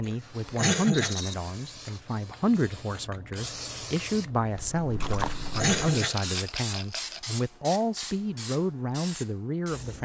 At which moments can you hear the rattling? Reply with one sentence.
You can hear the rattling from 0.9 to 1.4 s and from 5.5 to 7.2 s.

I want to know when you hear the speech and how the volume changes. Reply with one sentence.
The speech can be heard from 0.0 to 9.9 s, at a steady volume.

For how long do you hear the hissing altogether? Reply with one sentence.
The hissing can be heard for 10 seconds in total.